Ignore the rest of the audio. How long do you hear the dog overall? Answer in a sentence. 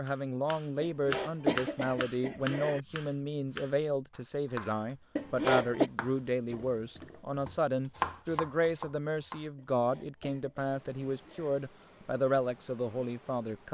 The dog can't be heard in this clip.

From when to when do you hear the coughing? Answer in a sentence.
You can hear the coughing from 0.8 to 2.8 s, from 5.2 to 5.9 s and from 9.6 to 11.6 s.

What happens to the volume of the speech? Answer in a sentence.
The volume of the speech stays about the same.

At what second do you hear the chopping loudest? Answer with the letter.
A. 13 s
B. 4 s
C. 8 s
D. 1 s
C.